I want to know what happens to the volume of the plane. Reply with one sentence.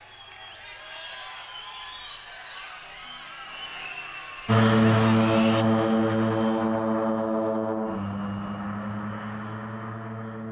The loudness of the plane goes down.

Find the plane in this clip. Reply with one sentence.
The plane can be heard from 4.5 to 10.4 s.